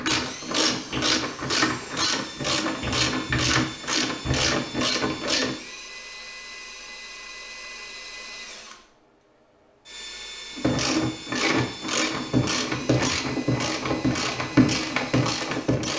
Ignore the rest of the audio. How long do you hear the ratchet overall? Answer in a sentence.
You can hear the ratchet for 11 seconds altogether.